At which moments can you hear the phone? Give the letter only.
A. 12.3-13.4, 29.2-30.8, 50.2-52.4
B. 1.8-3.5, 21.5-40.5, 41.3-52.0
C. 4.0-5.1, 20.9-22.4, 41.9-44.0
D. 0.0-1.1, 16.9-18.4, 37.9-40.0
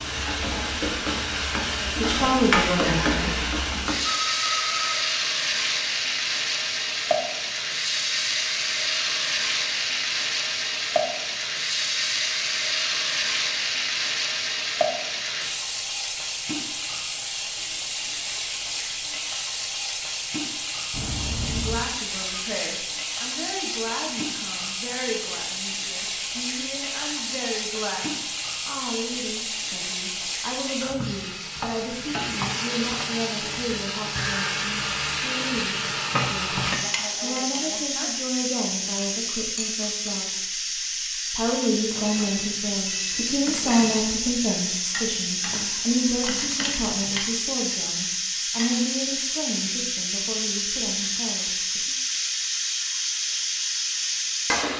C.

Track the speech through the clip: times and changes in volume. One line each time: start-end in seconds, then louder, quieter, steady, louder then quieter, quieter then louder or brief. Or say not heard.
1.8-3.5 brief
21.5-40.5 steady
41.3-52.0 quieter.